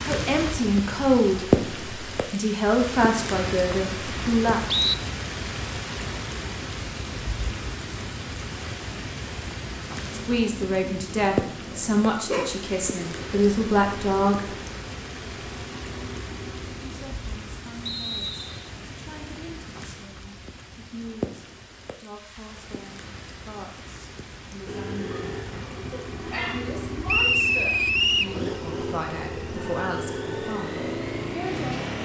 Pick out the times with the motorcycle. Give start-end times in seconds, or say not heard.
9.9-17.0, 24.6-31.9.